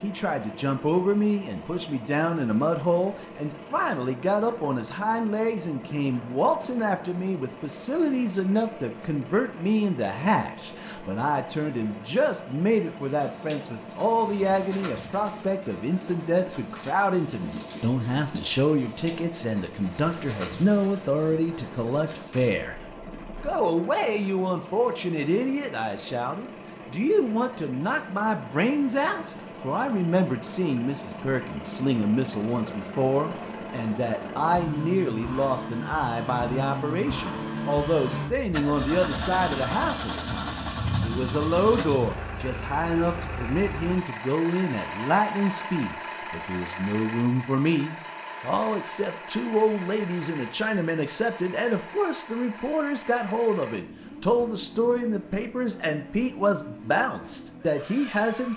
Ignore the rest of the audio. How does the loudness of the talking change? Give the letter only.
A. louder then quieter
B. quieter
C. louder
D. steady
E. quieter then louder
D.